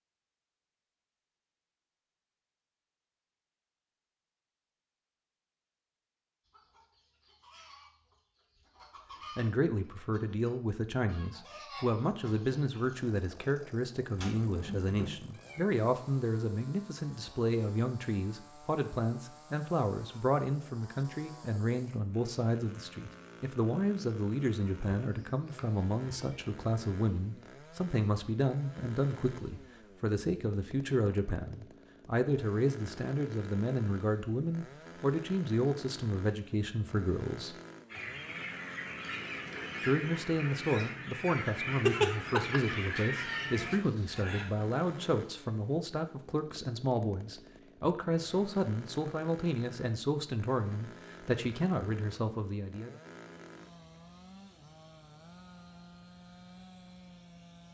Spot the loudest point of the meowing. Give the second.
42 s.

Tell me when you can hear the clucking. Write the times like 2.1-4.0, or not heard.
6.5-12.8, 37.9-44.5.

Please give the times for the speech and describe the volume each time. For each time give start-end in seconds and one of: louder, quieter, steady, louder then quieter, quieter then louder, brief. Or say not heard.
9.3-37.5 steady
39.9-53.0 steady.